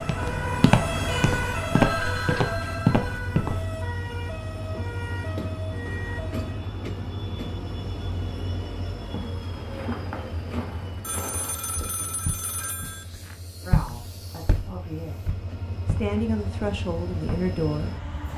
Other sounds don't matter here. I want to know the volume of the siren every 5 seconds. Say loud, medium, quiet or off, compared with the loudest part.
loud, medium, off, off.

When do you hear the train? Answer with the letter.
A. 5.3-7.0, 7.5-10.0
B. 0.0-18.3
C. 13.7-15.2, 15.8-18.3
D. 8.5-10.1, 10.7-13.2
B.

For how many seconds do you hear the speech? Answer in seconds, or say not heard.
4 s.